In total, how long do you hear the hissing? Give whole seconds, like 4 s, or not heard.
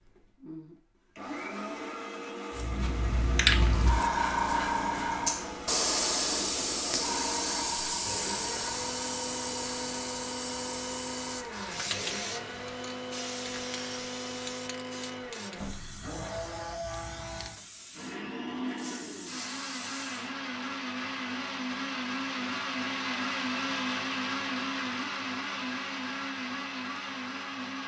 18 s.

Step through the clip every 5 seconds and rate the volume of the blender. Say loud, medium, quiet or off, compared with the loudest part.
medium, medium, medium, medium, loud, loud.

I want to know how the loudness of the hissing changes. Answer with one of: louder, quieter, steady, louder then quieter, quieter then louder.
quieter.